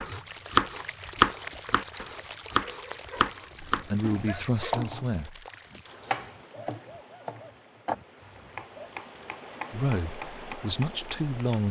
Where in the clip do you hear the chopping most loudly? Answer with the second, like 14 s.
1 s.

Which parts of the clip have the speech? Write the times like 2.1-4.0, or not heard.
3.7-5.5, 9.7-11.6.